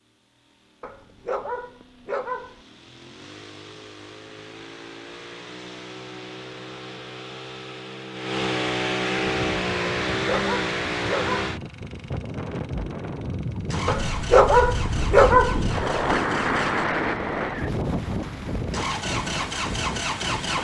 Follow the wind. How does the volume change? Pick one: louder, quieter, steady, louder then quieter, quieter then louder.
louder then quieter.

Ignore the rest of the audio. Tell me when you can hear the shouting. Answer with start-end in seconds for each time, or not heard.
not heard.